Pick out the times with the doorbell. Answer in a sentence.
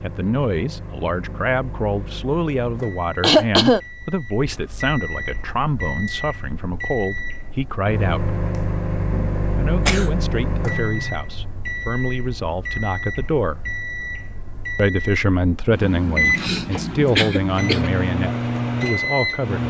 You can't hear the doorbell here.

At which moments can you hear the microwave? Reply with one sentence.
You can hear the microwave from 0.0 to 19.6 s.